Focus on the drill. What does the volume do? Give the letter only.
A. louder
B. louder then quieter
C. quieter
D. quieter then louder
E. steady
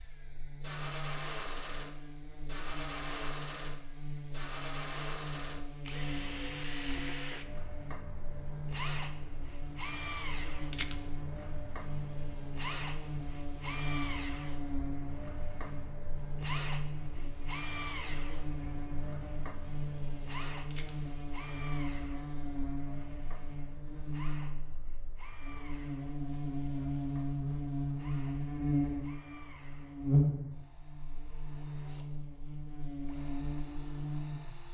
C.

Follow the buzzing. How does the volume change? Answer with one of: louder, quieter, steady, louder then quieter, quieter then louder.
louder.